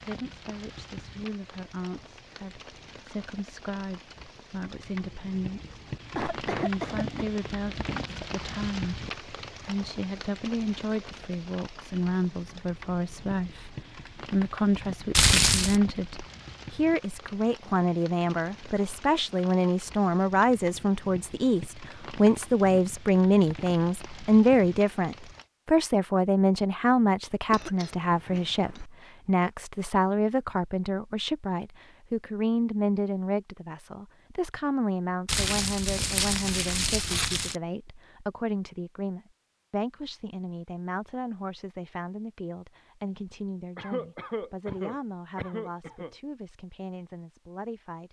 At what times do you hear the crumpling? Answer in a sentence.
The crumpling can be heard from 15.1 to 15.8 s and from 35.2 to 37.5 s.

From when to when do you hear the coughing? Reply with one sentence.
You can hear the coughing from 6.2 to 7.2 s, from 27.5 to 28.9 s and from 43.8 to 46.1 s.